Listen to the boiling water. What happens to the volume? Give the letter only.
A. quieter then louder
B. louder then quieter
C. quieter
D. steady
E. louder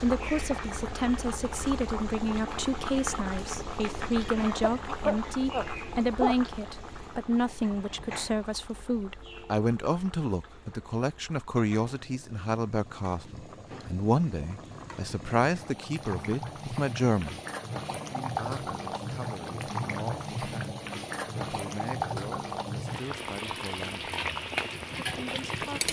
A.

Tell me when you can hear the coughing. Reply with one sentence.
You can hear the coughing from 4.3 to 6.3 s.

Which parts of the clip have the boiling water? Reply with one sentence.
The boiling water can be heard from 0.0 to 25.8 s.